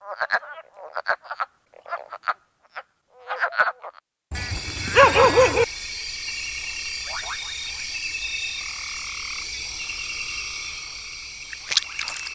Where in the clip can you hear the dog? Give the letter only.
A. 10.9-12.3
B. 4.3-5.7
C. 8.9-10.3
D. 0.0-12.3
B.